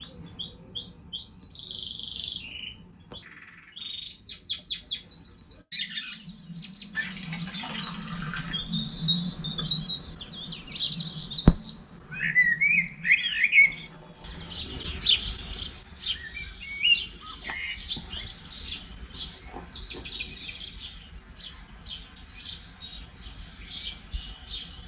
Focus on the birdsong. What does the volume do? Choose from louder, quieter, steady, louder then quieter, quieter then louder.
louder then quieter.